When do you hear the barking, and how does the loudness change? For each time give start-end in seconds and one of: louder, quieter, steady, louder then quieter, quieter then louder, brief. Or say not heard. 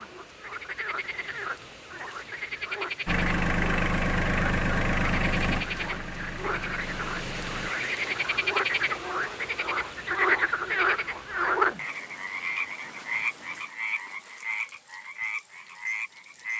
not heard.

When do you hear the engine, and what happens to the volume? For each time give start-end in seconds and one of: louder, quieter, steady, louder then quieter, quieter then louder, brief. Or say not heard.
3.0-7.7 quieter.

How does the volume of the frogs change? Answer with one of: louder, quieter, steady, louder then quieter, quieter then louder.
louder then quieter.